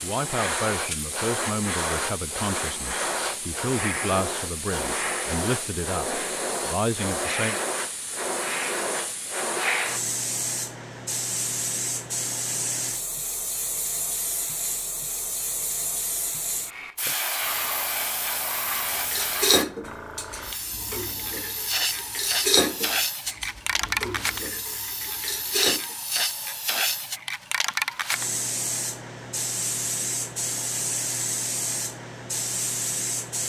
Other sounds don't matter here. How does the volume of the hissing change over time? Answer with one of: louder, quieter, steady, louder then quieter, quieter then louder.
steady.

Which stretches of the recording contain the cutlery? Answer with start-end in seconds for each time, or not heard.
18.9-25.8.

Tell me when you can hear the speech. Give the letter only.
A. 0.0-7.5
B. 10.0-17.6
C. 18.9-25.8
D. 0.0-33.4
A.